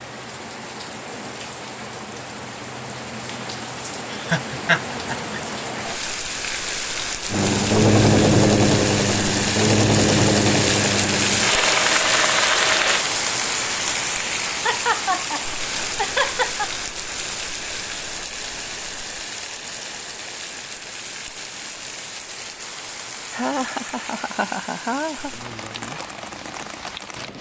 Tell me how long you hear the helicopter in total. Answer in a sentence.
The helicopter can be heard for 6 seconds in total.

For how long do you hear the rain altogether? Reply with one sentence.
You can hear the rain for 27 seconds altogether.